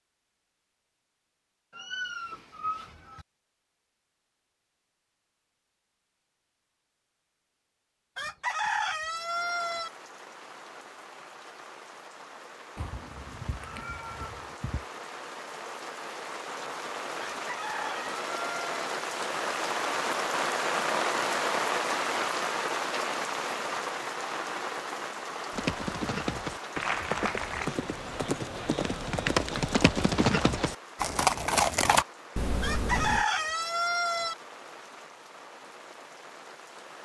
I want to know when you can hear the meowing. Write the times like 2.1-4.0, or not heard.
1.7-3.2, 12.8-14.8, 32.4-33.2.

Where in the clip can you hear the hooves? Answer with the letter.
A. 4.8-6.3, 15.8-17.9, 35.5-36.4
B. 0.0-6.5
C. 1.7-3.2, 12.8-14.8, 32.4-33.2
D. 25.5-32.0
D.